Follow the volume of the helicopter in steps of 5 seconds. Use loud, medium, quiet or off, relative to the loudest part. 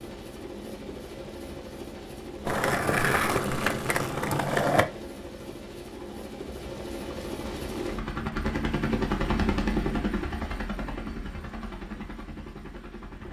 medium, loud, medium.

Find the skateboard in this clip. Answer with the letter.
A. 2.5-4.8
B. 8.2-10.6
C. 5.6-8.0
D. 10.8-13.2
A.